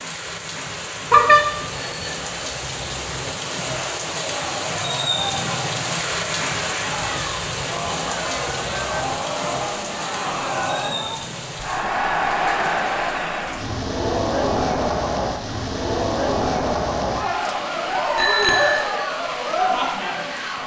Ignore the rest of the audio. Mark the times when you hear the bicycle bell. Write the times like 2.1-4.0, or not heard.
1.1-2.2, 18.1-18.8.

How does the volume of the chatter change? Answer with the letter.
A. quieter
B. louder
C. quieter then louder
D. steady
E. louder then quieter
B.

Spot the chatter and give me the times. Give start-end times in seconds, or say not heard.
3.6-20.6.